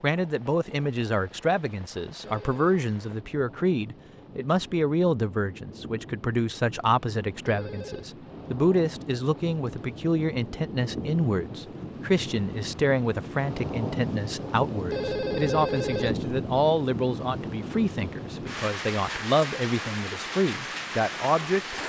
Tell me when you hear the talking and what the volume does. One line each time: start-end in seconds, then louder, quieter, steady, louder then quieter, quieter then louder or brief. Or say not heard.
0.0-21.8 steady.